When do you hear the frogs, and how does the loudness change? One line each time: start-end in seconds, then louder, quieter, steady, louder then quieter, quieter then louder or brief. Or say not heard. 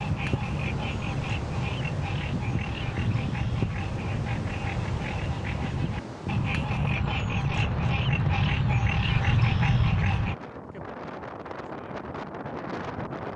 0.0-10.3 louder.